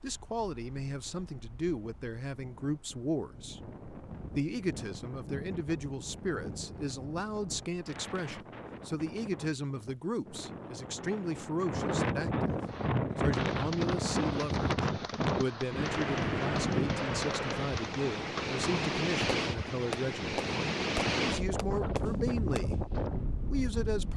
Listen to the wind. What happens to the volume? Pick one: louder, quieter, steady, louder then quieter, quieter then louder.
louder.